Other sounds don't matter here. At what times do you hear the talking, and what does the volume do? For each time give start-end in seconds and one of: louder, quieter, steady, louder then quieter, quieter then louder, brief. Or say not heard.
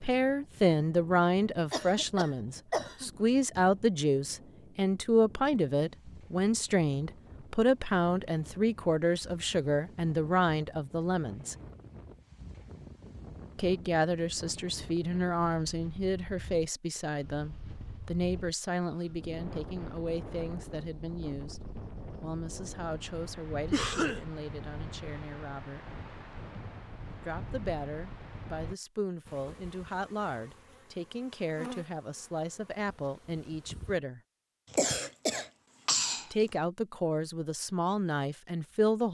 0.0-11.6 steady
13.6-25.9 quieter
27.2-34.2 steady
36.3-39.0 brief.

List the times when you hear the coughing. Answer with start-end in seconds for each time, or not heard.
1.7-3.1, 23.7-24.2, 34.7-36.5.